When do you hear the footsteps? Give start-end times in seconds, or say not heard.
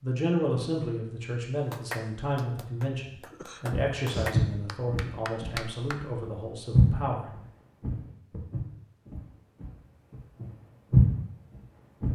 3.7-12.1.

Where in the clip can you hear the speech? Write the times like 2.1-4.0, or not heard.
0.0-7.3.